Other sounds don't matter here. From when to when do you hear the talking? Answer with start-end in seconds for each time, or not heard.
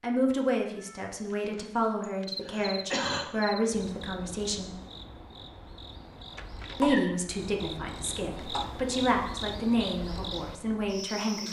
0.0-4.8, 6.8-11.4.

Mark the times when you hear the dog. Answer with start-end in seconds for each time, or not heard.
not heard.